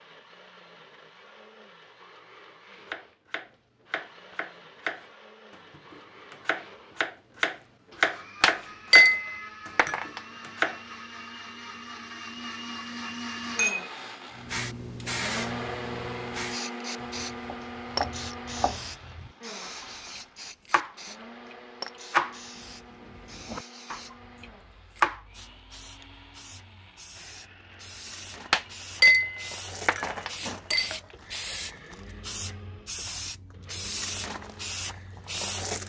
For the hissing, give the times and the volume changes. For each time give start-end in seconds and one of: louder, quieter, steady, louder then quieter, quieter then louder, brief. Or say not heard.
14.3-35.8 quieter then louder.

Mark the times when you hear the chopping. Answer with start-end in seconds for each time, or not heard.
2.9-10.8, 17.0-25.2.